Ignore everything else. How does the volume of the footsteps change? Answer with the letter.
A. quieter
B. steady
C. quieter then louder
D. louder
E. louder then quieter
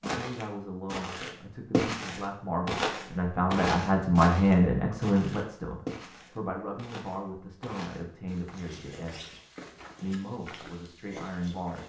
A.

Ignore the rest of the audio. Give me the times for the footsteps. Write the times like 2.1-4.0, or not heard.
0.0-11.8.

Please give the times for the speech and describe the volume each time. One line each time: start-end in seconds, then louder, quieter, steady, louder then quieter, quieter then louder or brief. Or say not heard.
0.0-9.2 louder then quieter
10.0-11.8 brief.